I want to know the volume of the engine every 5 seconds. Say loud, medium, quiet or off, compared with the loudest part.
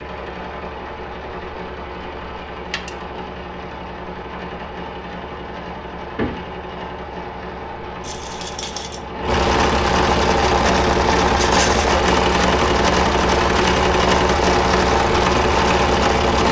quiet, medium, loud, loud.